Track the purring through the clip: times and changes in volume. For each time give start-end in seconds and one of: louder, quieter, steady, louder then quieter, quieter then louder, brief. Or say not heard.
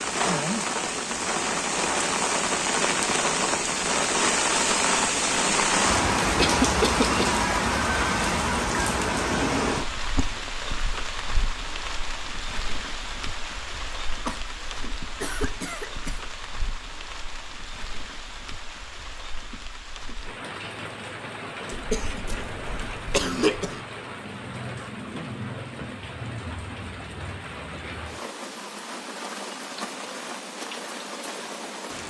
not heard.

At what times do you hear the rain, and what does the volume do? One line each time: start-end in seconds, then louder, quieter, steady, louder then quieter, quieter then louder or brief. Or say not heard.
0.0-32.0 quieter.